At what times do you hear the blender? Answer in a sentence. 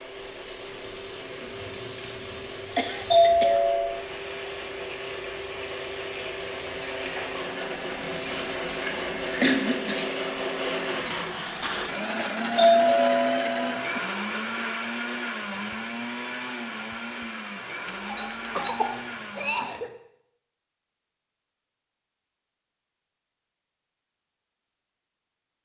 You can hear the blender from 0.0 to 19.9 s.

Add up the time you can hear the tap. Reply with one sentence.
You can hear the tap for 12 seconds altogether.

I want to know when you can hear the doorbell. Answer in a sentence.
The doorbell can be heard from 3.1 to 4.0 s, from 12.6 to 14.1 s and from 17.9 to 18.9 s.